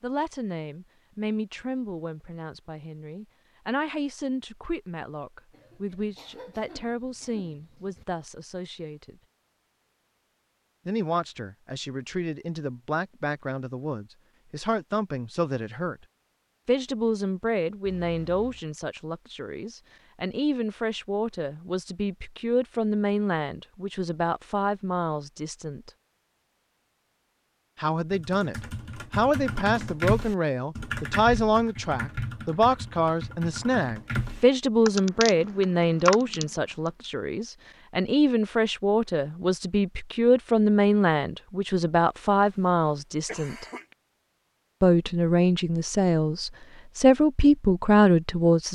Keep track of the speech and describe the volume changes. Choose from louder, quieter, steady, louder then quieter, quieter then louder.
louder.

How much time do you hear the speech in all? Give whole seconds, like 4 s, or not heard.
43 s.